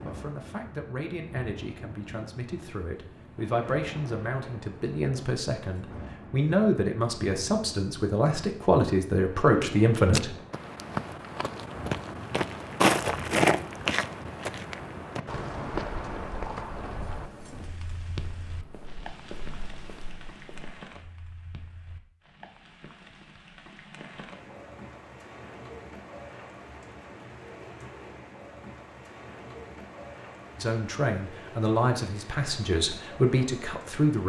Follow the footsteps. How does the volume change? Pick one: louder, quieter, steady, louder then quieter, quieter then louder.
louder then quieter.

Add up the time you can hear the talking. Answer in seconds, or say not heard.
14 s.